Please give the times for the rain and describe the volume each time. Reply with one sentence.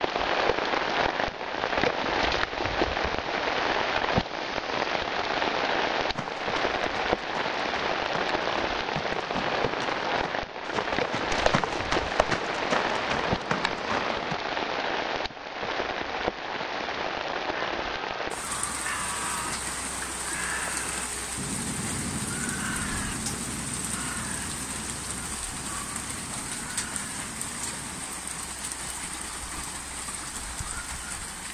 The rain can be heard from 0.0 to 31.5 s, getting quieter.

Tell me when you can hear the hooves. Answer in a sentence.
You can hear the hooves from 6.1 to 14.3 s.